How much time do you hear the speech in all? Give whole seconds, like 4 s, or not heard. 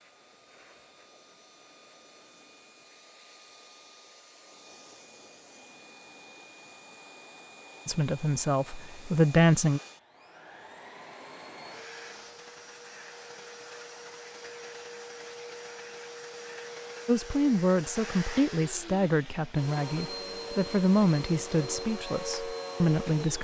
8 s.